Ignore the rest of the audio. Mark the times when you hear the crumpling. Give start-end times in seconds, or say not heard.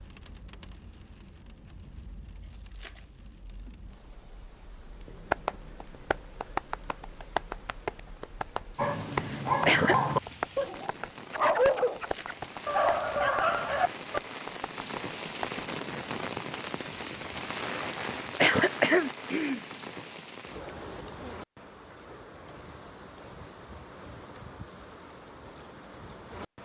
2.4-3.1, 11.9-12.4, 18.0-18.7.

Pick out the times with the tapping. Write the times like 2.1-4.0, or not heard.
5.3-15.7.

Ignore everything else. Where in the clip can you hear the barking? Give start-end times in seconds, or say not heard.
8.8-14.2.